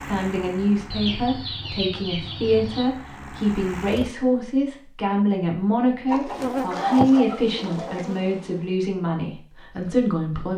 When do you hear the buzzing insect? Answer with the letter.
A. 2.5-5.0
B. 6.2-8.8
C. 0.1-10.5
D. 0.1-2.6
B.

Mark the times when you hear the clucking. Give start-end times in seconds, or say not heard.
0.9-2.9, 6.0-8.1.